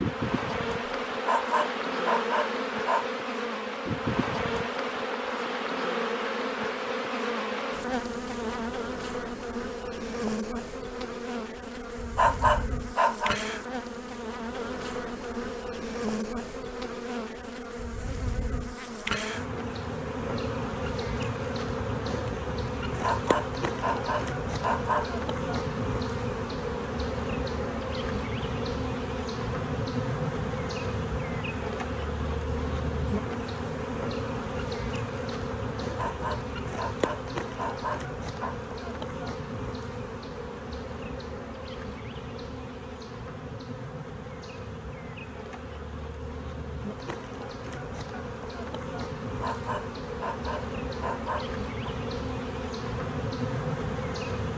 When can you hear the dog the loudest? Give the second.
12 s.